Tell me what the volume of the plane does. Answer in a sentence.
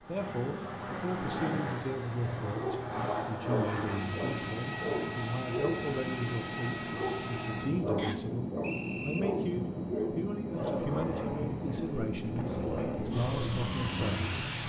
The loudness of the plane stays about the same.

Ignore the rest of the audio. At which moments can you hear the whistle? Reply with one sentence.
The whistle can be heard from 8.0 to 9.2 s.